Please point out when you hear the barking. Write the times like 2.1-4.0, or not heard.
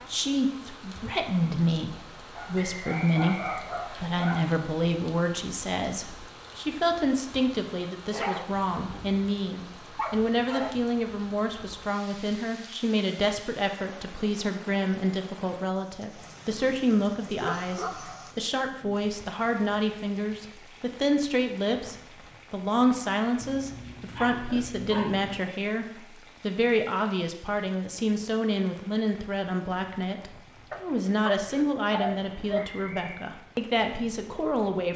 2.4-4.5, 8.1-10.8, 17.4-18.4, 23.4-25.4, 30.7-32.7.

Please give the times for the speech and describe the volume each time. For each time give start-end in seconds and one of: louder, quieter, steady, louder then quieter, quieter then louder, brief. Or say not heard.
0.1-34.9 steady.